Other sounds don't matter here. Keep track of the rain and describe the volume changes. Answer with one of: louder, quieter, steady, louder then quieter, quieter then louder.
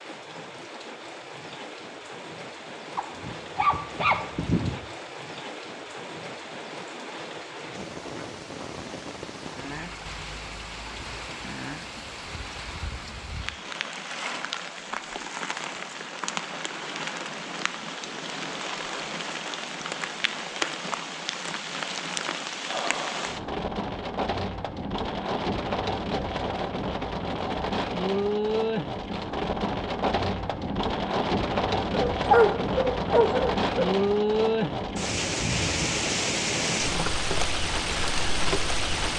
louder.